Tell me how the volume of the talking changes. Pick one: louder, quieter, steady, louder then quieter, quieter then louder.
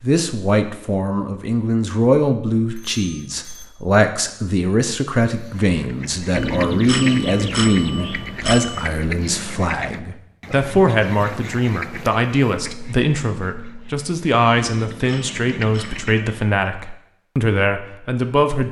steady.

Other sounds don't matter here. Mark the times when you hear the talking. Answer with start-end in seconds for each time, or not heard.
0.0-18.6.